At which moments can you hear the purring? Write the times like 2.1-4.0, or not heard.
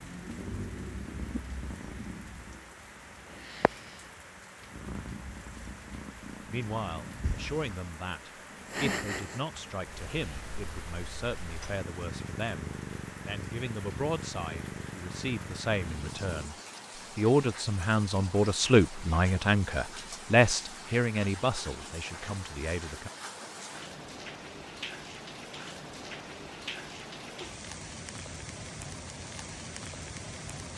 0.0-16.5.